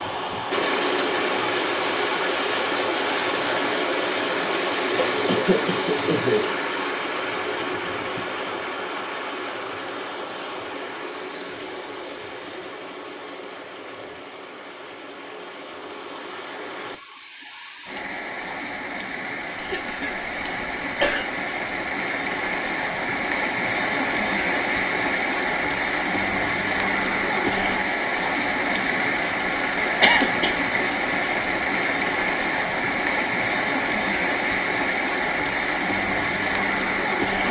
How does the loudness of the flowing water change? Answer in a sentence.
The loudness of the flowing water goes down, then up.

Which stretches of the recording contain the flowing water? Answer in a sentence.
You can hear the flowing water from 0.0 to 37.4 s.